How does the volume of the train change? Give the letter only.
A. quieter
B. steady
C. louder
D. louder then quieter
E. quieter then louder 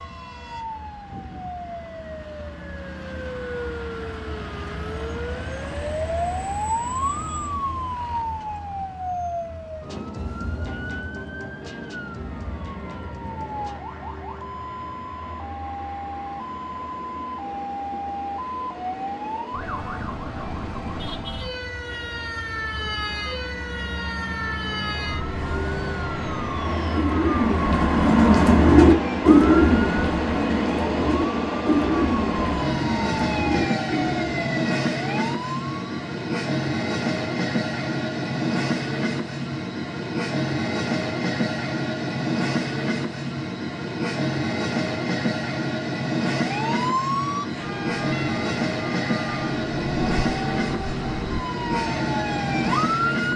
C.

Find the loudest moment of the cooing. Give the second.
29 s.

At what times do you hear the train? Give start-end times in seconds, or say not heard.
12.1-53.3.